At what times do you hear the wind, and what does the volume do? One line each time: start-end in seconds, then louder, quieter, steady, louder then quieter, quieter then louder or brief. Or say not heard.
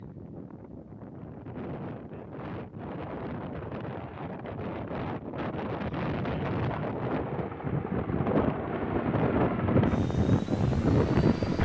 0.0-11.5 louder.